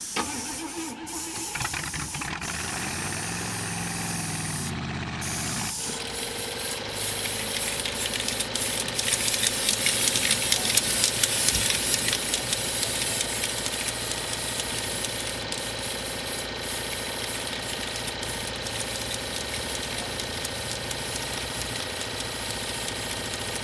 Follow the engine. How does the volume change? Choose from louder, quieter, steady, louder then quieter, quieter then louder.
steady.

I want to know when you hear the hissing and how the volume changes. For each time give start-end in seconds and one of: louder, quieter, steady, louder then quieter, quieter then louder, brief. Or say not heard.
0.0-23.5 louder then quieter.